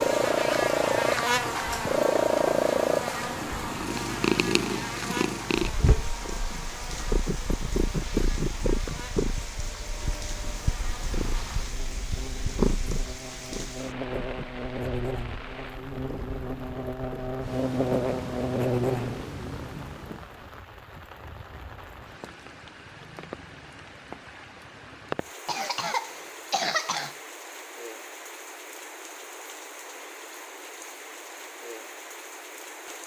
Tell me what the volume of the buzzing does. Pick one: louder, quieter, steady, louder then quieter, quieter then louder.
quieter then louder.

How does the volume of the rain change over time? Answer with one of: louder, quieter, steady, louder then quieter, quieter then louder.
steady.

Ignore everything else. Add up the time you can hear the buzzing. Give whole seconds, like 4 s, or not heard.
19 s.